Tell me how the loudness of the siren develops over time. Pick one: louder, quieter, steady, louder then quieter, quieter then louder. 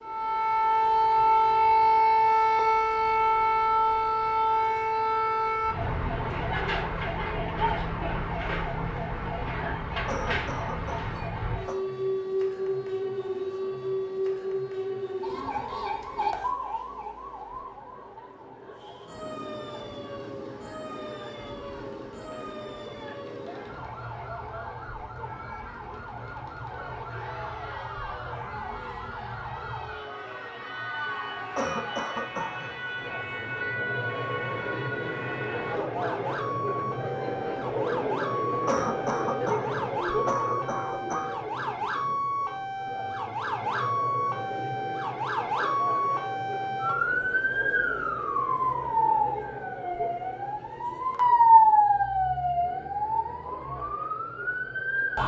quieter then louder.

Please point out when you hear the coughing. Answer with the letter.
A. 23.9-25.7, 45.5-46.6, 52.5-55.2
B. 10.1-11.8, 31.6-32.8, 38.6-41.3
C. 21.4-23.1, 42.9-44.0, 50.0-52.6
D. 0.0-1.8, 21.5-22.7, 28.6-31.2
B.